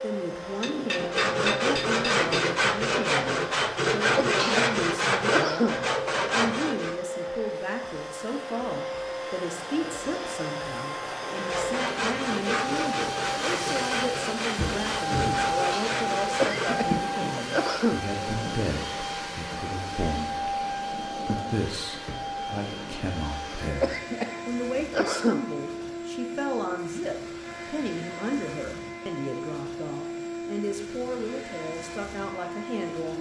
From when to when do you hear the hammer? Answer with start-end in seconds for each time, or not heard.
0.6-2.5.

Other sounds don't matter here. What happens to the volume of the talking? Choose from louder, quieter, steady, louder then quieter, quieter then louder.
steady.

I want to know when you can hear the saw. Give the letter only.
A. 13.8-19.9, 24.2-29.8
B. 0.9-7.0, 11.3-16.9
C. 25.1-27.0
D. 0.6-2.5
B.